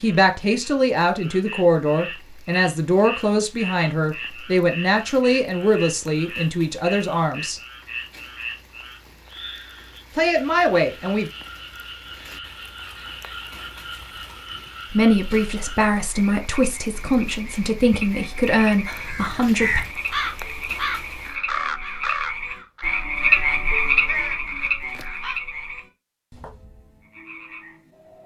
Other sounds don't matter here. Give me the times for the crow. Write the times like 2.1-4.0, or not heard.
18.9-25.4.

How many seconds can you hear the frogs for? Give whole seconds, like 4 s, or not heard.
28 s.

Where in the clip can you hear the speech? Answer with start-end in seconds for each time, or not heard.
0.0-7.6, 10.2-11.3, 14.9-19.8.